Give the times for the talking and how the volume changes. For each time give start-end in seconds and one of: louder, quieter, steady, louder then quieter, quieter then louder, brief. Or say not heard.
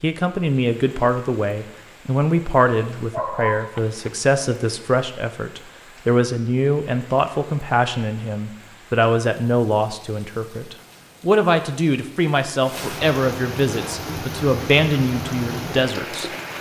0.0-16.3 steady.